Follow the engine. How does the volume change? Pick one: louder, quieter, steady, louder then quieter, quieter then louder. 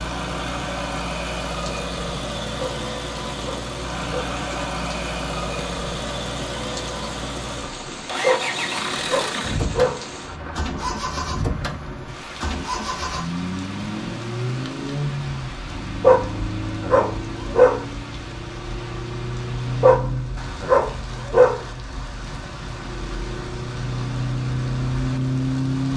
steady.